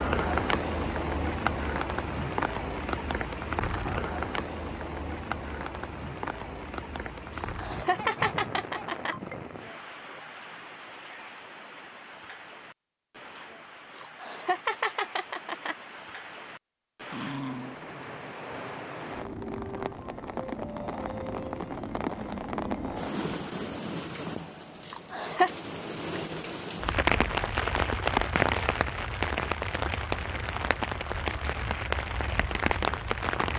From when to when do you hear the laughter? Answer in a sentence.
The laughter can be heard from 7.3 to 9.2 s, from 13.9 to 15.8 s and from 24.9 to 25.5 s.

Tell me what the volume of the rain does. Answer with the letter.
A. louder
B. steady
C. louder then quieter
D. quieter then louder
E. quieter
D.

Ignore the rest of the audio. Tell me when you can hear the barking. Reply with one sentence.
The barking can be heard from 8.0 to 8.9 s and from 17.1 to 17.9 s.